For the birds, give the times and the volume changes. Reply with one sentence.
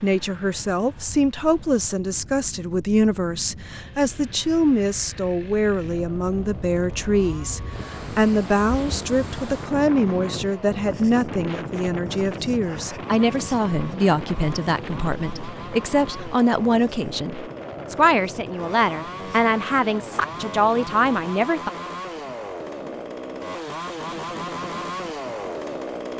You can't hear the birds here.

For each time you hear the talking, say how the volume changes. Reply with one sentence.
You can hear the talking from 0.0 to 21.7 s, at a steady volume.